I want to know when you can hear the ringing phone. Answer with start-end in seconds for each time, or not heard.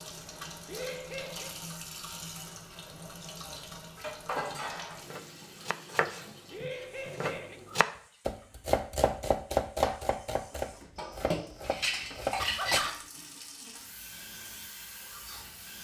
not heard.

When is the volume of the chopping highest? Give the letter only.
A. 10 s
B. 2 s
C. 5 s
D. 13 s
A.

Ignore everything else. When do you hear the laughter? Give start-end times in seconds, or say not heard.
0.7-1.6, 6.5-7.6, 12.3-13.1.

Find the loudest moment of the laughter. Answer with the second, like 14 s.
13 s.